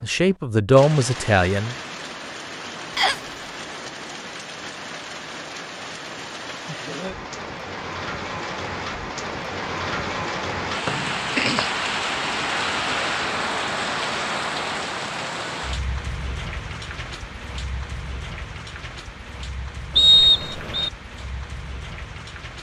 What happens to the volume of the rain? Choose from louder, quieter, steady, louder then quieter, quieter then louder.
louder then quieter.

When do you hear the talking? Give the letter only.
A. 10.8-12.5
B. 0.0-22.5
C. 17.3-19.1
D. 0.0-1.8
D.